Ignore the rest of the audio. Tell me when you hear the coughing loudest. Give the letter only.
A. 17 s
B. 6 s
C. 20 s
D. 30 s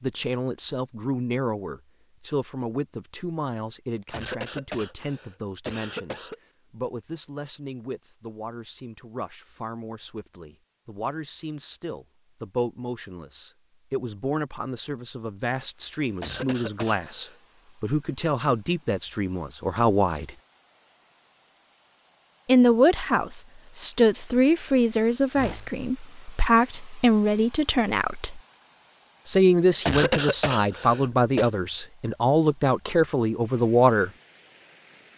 D.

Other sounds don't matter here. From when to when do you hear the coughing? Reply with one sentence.
You can hear the coughing from 4.1 to 6.3 s, from 16.2 to 17.4 s and from 29.9 to 31.5 s.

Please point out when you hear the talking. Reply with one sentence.
The talking can be heard from 0.0 to 20.4 s, from 22.4 to 28.4 s and from 29.2 to 34.1 s.